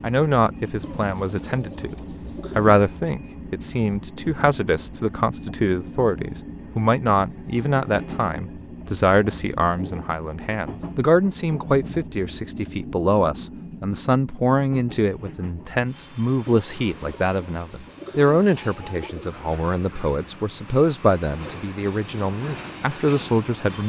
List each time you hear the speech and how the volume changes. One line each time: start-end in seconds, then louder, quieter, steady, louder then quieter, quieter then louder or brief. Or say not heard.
0.0-1.9 brief
2.5-23.8 steady.